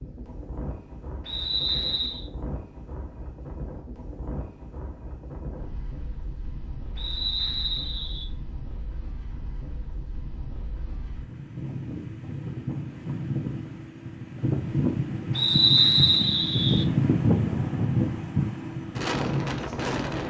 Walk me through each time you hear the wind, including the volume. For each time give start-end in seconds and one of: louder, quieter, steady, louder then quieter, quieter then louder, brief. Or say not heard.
0.0-20.2 louder.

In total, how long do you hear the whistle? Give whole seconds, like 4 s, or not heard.
4 s.